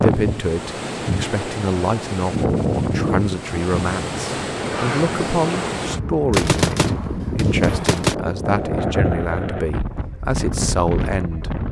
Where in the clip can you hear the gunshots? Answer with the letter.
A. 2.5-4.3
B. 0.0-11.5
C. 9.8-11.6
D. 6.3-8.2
D.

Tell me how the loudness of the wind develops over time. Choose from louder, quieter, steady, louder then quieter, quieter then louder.
steady.